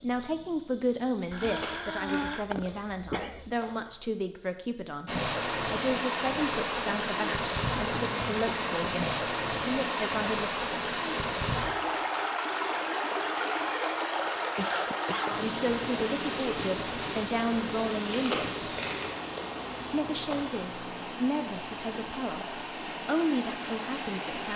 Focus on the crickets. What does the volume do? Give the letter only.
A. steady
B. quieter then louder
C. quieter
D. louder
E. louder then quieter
D.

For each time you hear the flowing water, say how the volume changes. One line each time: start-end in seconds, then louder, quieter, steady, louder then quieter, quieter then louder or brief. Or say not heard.
5.0-24.5 quieter.